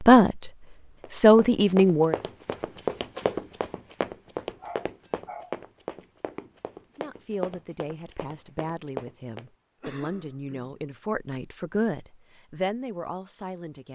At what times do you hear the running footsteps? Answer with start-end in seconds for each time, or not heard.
1.0-9.4.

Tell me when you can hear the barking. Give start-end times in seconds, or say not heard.
4.6-6.0.